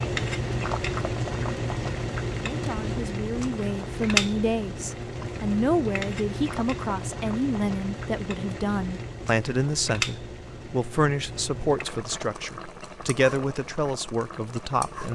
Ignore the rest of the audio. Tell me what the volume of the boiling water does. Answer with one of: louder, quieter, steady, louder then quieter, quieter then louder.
quieter.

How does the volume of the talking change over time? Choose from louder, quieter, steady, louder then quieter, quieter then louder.
steady.